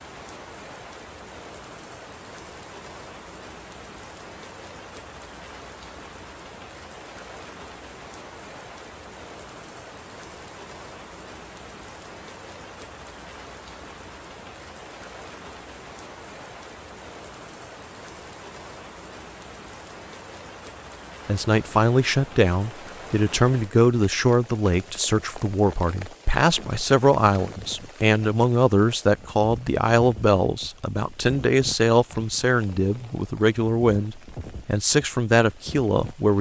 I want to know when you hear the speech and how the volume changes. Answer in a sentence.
You can hear the speech from 21.2 to 36.3 s, at a steady volume.